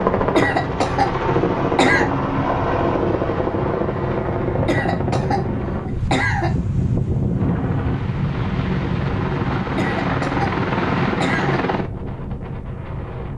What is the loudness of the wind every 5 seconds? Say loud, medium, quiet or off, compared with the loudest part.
medium, loud, medium.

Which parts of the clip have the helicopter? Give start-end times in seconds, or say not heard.
0.0-5.9, 7.3-11.9.